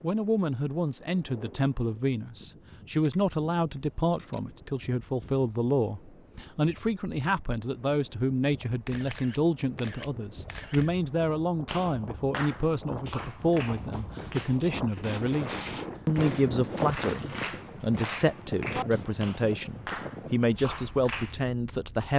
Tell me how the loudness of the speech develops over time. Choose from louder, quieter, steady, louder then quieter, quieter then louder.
steady.